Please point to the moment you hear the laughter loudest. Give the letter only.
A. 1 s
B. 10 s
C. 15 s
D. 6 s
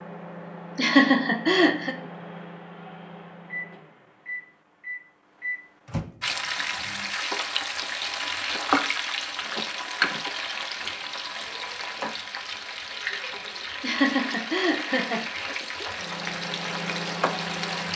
A.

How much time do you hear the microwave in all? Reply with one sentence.
You can hear the microwave for 9 seconds altogether.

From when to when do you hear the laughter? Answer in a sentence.
You can hear the laughter from 0.8 to 1.9 s and from 13.8 to 15.8 s.